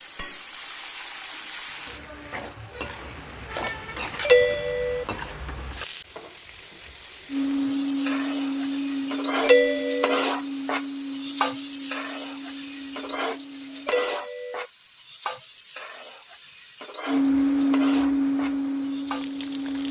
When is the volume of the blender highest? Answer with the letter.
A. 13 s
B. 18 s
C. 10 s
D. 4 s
B.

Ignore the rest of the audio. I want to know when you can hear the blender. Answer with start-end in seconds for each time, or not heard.
7.2-13.9, 17.1-19.8.